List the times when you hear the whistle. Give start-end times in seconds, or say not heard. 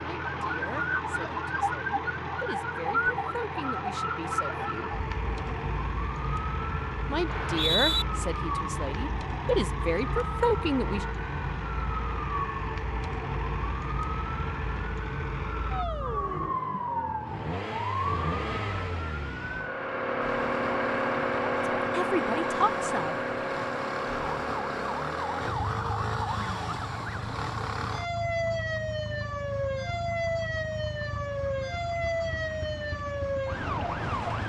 7.2-8.1.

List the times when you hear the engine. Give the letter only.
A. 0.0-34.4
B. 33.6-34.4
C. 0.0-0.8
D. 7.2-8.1
A.